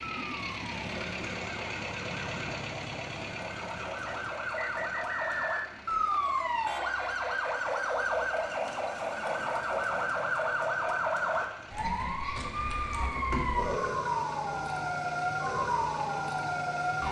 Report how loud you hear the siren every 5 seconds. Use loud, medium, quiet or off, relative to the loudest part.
medium, loud, loud, loud.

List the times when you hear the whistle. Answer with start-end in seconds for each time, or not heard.
4.0-5.8.